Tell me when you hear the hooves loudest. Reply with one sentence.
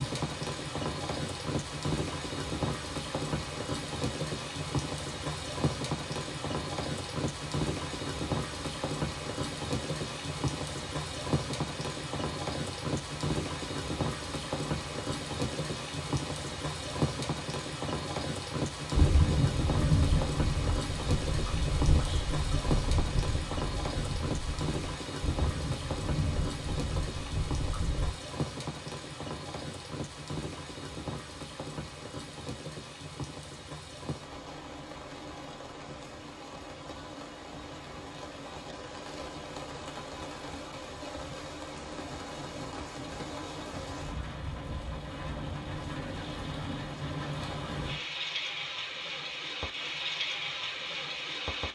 The loudest moment of the hooves is at 20 seconds.